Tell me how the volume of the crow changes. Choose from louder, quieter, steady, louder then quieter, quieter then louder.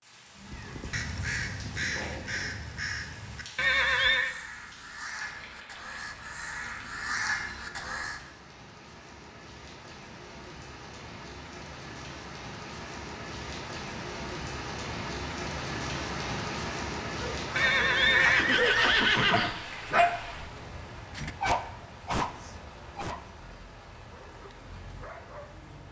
quieter then louder.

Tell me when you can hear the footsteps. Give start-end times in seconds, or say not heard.
not heard.